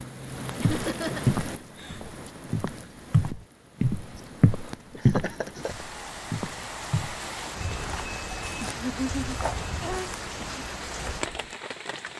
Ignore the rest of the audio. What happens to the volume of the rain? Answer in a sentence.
The volume of the rain goes down, then up.